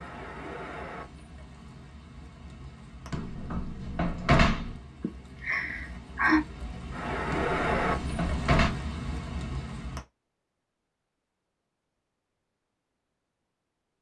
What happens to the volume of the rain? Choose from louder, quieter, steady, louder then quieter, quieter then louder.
quieter then louder.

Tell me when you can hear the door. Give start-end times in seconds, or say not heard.
3.1-4.8, 7.3-8.7.